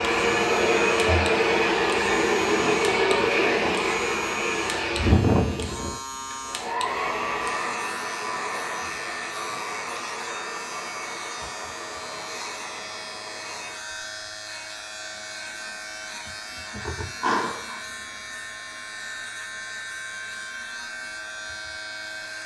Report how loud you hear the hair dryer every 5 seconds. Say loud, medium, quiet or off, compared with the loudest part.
loud, medium, quiet, quiet, quiet.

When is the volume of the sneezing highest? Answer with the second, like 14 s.
17 s.